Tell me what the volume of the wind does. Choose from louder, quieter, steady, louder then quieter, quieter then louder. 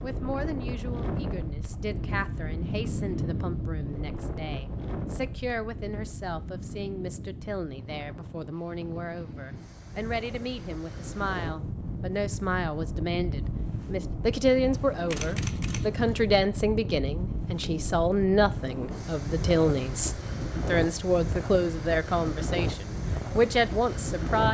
quieter then louder.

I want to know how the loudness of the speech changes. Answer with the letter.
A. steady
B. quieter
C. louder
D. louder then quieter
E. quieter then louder
C.